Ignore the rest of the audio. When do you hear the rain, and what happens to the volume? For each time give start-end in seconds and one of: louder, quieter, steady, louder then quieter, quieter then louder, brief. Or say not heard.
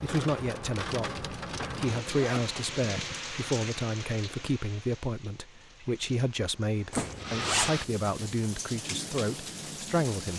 0.0-10.3 quieter then louder.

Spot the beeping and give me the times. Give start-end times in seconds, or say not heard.
not heard.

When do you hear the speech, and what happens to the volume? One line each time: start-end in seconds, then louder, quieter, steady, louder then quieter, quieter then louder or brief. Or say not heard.
0.0-10.3 steady.